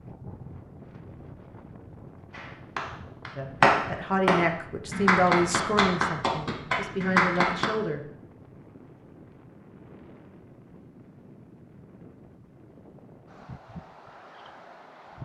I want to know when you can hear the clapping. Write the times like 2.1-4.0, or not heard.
2.4-7.7.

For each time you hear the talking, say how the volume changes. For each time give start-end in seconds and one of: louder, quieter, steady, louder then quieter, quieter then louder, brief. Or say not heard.
3.4-8.0 quieter then louder.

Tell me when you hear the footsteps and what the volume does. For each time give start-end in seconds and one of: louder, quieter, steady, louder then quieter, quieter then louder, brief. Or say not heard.
not heard.